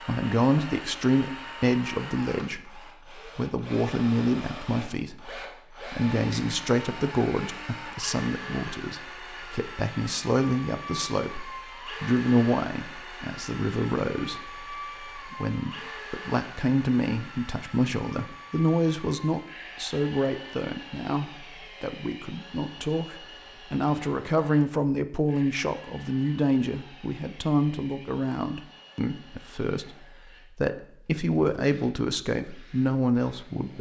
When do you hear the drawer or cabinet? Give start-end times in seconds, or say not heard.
not heard.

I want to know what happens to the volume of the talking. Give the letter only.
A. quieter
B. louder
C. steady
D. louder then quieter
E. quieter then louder
C.